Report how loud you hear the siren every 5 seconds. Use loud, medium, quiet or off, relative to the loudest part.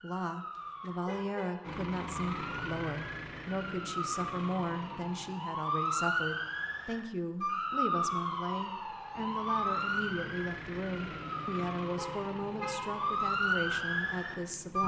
medium, loud, loud.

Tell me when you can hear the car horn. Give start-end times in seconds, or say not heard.
0.6-1.6, 11.9-13.2.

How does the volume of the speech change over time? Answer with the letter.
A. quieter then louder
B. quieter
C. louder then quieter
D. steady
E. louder
D.